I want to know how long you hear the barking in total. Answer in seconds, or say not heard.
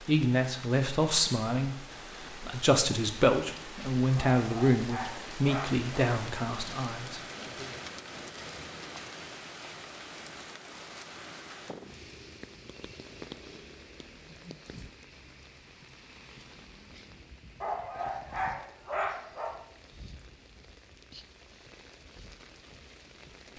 4 s.